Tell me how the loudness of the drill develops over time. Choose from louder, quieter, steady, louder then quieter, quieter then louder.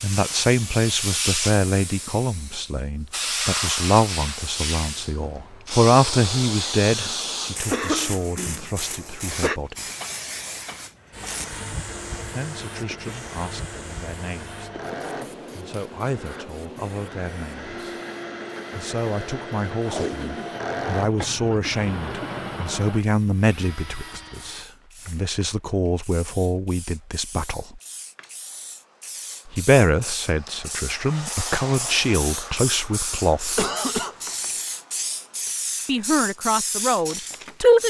louder.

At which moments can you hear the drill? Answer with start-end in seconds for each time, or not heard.
10.9-24.6.